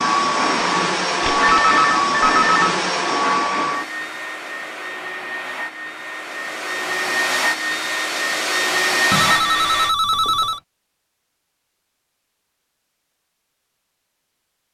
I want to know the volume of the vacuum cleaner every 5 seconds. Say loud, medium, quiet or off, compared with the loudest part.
loud, loud, off.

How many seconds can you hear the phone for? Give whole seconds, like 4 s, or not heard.
3 s.